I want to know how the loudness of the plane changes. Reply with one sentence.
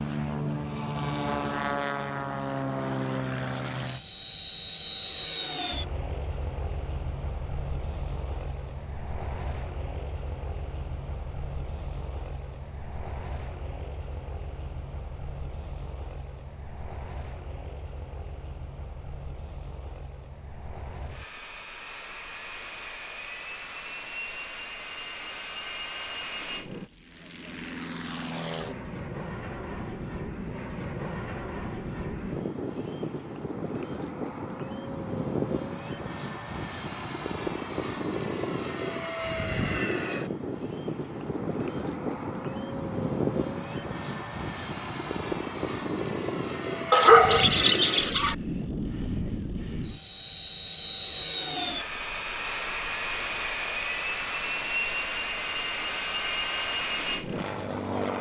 The loudness of the plane goes down, then up.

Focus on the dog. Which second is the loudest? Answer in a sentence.
The loudest moment of the dog is at 47 seconds.